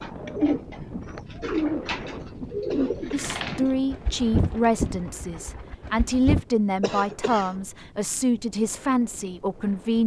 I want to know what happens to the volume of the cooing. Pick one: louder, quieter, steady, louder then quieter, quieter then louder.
quieter.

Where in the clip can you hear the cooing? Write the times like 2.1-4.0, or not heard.
0.0-6.5.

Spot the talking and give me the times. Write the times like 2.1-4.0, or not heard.
3.1-10.0.